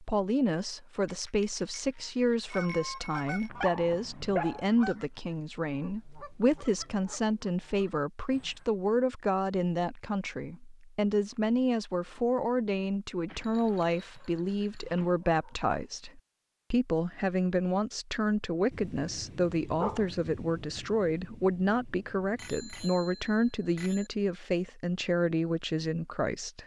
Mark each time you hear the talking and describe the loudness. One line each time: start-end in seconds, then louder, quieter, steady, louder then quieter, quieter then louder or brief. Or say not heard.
0.0-26.6 steady.